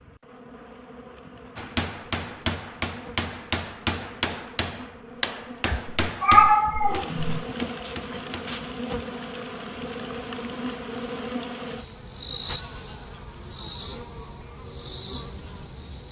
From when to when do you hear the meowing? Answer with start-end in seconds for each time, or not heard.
5.7-7.5.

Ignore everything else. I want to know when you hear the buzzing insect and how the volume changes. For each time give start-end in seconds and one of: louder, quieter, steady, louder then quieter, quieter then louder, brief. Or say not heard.
0.0-16.0 louder.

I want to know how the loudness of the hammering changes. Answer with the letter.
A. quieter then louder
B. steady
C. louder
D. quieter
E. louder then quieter
D.